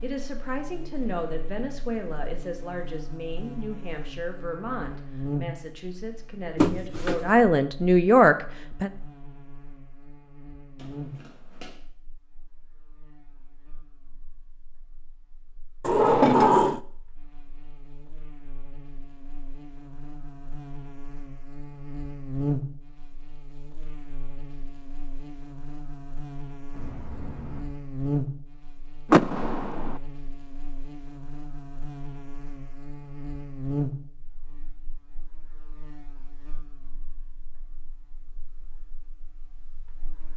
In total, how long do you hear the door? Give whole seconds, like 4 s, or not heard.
3 s.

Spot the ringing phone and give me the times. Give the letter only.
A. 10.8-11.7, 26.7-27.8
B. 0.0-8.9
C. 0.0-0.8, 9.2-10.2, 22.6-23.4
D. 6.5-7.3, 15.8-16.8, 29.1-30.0
A.